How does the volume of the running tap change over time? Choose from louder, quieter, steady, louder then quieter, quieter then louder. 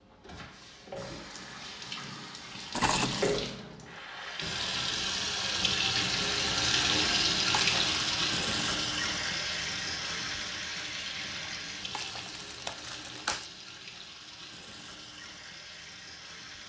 louder then quieter.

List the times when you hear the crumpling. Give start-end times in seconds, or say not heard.
2.7-3.4, 7.5-8.0, 11.9-13.4.